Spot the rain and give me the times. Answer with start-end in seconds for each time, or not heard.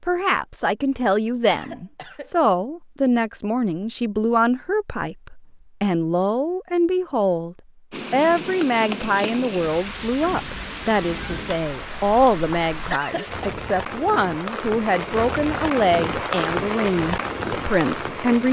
7.9-18.4.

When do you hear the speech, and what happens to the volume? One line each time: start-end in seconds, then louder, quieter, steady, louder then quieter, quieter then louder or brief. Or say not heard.
0.0-18.4 steady.